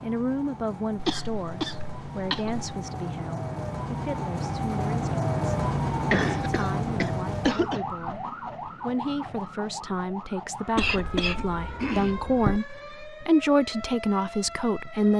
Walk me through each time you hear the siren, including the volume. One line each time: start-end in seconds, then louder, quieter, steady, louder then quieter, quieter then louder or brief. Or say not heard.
0.0-15.1 louder then quieter.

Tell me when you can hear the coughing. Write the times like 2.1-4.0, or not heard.
0.9-2.7, 6.0-7.8, 10.8-12.6.